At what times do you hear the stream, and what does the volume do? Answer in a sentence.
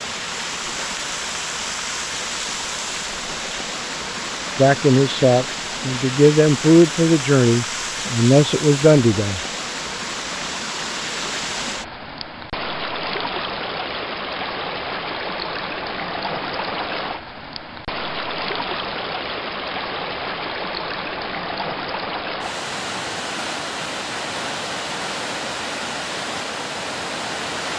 You can hear the stream from 0.0 to 27.7 s, at a steady volume.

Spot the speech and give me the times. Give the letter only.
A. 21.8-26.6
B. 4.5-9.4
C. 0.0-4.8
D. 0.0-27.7
B.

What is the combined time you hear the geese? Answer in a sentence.
The geese can't be heard in this clip.